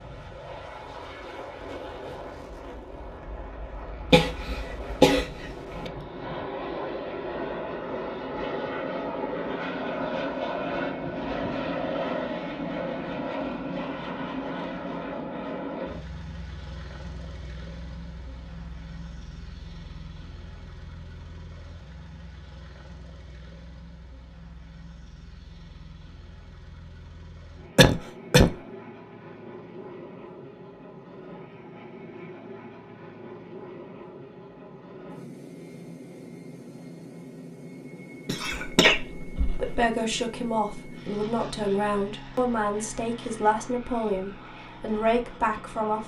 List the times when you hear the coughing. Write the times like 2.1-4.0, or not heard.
4.1-5.9, 27.8-28.6, 38.2-39.8.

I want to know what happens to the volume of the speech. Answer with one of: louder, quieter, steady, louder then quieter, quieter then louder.
steady.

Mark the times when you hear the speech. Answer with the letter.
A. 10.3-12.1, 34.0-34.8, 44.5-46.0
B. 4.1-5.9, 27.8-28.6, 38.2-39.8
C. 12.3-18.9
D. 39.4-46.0
D.